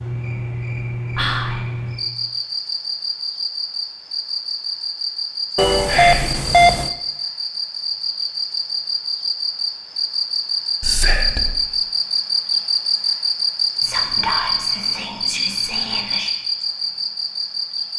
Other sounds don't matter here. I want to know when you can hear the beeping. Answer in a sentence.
You can hear the beeping from 5.5 to 6.9 s.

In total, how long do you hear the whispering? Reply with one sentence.
The whispering can be heard for 4 seconds in total.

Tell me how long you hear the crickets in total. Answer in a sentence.
You can hear the crickets for 18 seconds altogether.